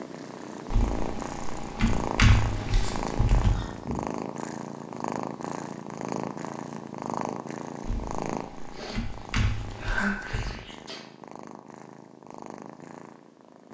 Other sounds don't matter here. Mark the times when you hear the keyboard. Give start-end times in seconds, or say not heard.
0.7-3.5, 7.8-10.6.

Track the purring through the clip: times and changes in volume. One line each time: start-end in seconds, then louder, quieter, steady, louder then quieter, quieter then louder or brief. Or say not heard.
0.0-13.6 quieter.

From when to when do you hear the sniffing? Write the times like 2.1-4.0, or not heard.
3.4-4.2, 8.7-11.1.